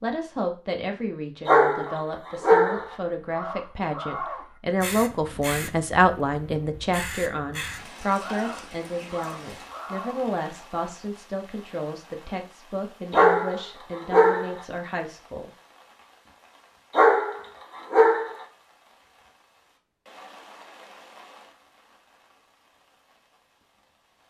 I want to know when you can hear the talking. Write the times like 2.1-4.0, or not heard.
0.0-15.5.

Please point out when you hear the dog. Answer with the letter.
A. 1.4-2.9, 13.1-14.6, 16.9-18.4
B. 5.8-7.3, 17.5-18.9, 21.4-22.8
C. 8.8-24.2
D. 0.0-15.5
A.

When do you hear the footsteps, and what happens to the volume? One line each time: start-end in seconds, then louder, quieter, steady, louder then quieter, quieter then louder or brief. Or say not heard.
not heard.